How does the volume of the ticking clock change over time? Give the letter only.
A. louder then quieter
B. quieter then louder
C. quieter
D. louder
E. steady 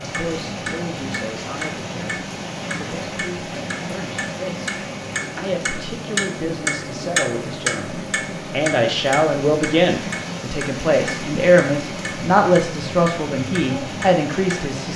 A.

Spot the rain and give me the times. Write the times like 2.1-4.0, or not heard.
0.0-14.9.